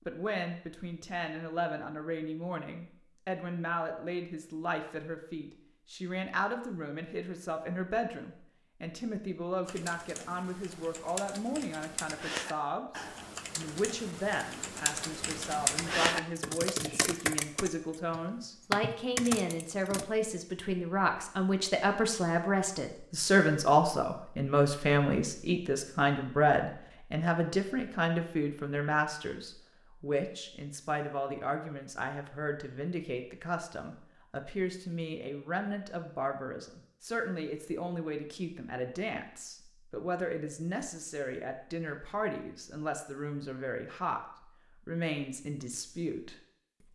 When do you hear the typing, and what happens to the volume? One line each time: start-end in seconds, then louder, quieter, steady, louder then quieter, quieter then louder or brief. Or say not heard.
9.7-20.1 louder.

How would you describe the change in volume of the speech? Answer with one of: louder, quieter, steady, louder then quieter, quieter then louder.
louder then quieter.